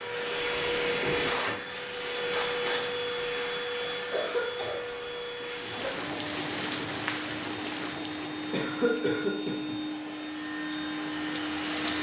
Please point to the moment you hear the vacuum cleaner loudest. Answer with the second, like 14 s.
1 s.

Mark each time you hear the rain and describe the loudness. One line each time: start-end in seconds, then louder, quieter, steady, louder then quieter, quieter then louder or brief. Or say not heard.
5.5-11.9 quieter then louder.